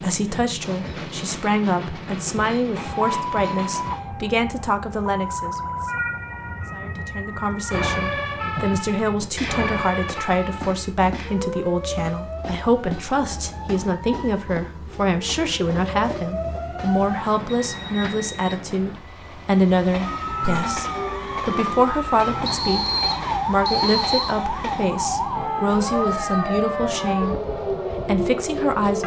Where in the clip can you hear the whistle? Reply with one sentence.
The whistle can be heard from 22.4 to 24.4 s.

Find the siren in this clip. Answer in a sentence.
The siren can be heard from 2.8 to 17.2 s and from 20.1 to 29.0 s.